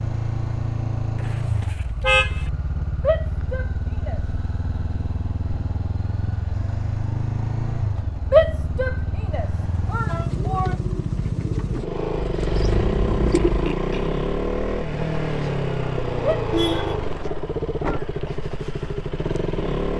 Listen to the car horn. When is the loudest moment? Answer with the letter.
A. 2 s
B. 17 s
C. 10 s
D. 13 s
A.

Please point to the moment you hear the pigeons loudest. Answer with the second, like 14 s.
13 s.